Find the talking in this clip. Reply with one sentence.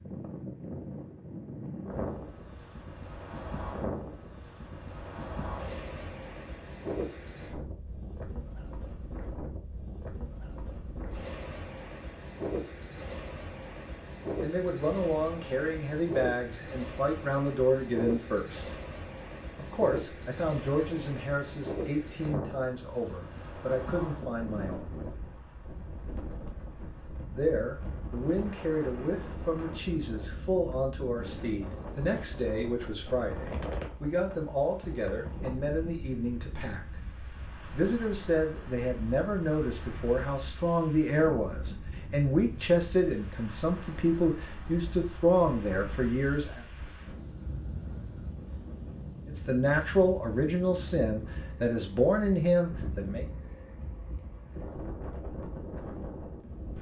The talking can be heard from 14.4 to 18.8 s, from 19.6 to 24.9 s, from 27.3 to 36.8 s, from 37.7 to 46.6 s and from 49.2 to 53.2 s.